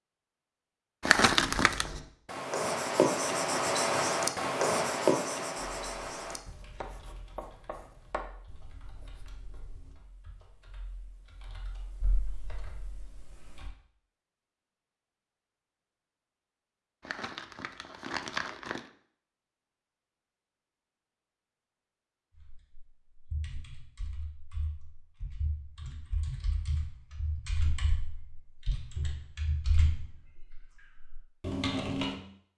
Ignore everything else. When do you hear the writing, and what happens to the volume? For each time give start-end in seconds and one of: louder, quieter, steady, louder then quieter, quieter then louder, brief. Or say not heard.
1.2-9.9 quieter.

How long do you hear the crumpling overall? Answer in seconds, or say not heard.
3 s.